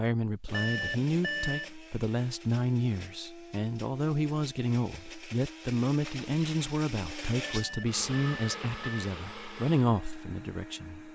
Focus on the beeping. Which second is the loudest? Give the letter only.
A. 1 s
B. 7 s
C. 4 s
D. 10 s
A.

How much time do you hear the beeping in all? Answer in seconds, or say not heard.
3 s.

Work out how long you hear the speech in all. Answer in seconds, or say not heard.
11 s.